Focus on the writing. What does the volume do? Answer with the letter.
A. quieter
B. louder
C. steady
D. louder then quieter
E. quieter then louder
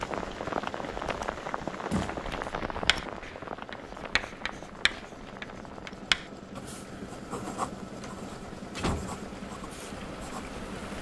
D.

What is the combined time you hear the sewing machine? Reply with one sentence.
The sewing machine can be heard for 11 seconds in total.